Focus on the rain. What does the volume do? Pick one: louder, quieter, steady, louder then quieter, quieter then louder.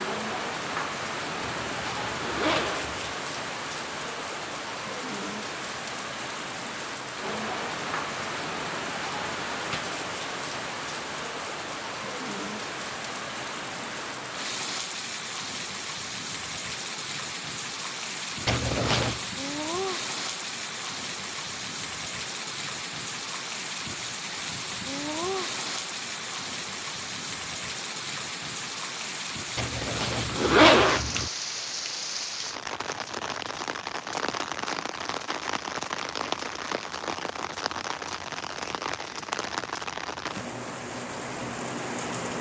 steady.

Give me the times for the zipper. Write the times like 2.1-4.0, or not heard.
1.4-3.1, 18.4-19.2, 29.6-31.3.